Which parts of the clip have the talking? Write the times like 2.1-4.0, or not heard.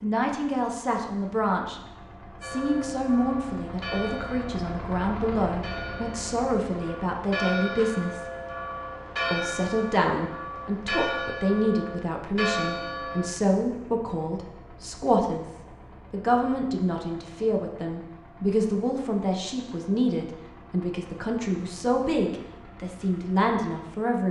0.0-1.8, 2.4-8.2, 9.3-24.2.